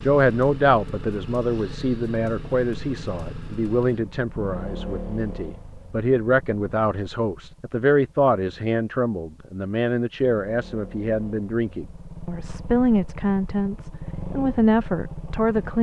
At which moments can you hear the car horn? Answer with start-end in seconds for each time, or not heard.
not heard.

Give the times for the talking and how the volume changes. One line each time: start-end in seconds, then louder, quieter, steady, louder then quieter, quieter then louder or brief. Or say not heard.
0.0-15.7 steady.